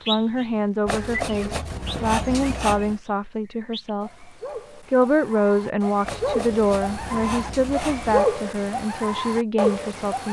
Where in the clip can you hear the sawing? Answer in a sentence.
The sawing can be heard from 0.8 to 3.0 s and from 6.0 to 8.2 s.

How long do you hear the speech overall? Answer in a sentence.
You can hear the speech for 10 seconds altogether.